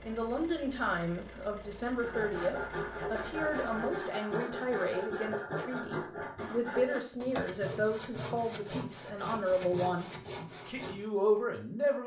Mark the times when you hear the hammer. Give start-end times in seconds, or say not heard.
not heard.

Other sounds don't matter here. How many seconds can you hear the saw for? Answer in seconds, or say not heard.
9 s.